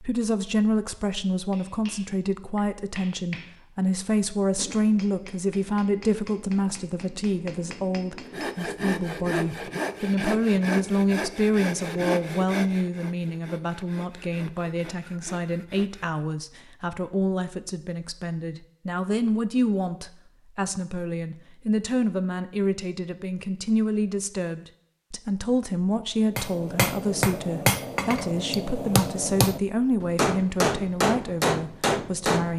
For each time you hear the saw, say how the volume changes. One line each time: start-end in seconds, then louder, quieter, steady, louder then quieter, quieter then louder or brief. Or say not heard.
8.2-16.2 quieter.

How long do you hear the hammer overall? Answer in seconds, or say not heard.
13 s.